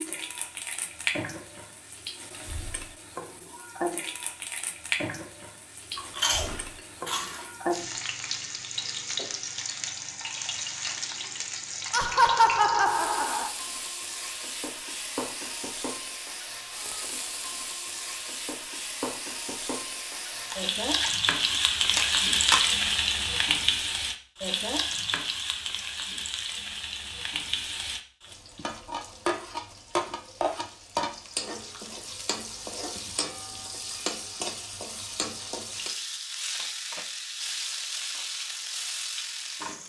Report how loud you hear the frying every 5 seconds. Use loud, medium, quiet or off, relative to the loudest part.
medium, medium, medium, medium, loud, medium, medium, medium.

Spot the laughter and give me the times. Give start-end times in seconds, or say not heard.
11.9-13.5.